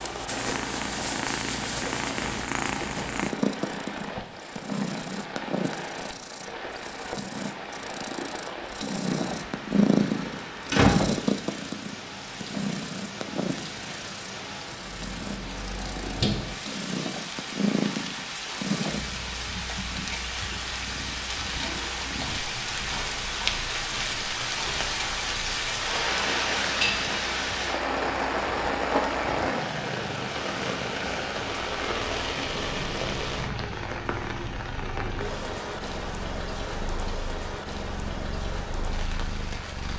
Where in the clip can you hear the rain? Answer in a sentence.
You can hear the rain from 0.0 to 39.9 s.